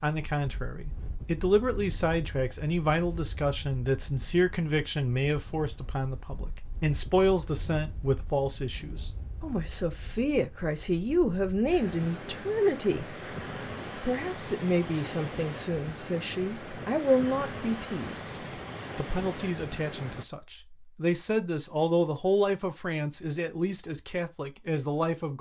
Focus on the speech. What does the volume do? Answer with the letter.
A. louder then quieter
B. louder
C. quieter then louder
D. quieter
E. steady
E.